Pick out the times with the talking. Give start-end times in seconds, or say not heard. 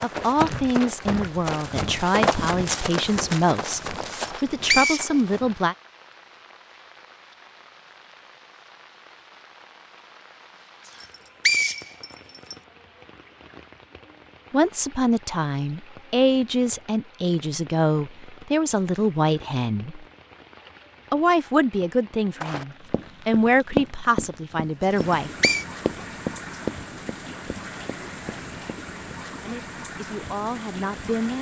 0.0-5.8, 14.5-20.1, 21.1-25.3, 29.4-31.3.